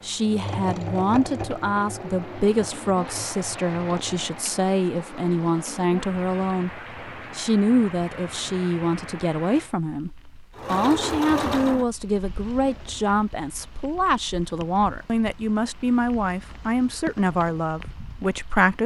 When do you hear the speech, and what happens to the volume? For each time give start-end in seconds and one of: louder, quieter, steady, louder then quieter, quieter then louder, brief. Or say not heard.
0.0-18.8 steady.